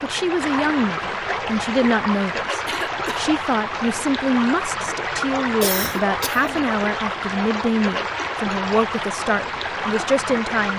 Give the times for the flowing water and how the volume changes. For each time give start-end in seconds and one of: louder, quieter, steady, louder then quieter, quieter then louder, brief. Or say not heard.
0.0-10.7 steady.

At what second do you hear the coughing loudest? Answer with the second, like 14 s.
6 s.